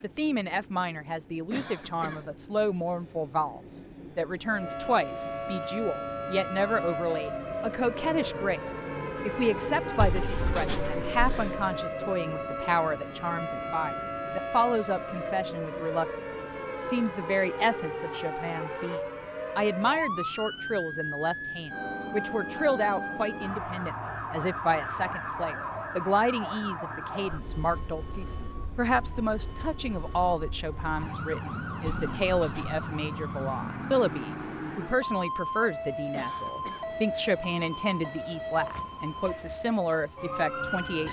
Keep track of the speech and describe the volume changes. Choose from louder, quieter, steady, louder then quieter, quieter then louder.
steady.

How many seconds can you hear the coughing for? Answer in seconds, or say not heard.
2 s.